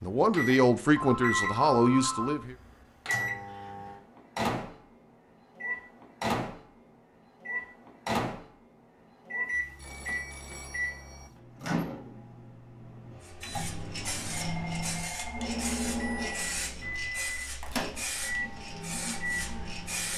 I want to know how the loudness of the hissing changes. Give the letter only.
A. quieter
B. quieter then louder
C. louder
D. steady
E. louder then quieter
D.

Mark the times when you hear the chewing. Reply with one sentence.
You can't hear the chewing here.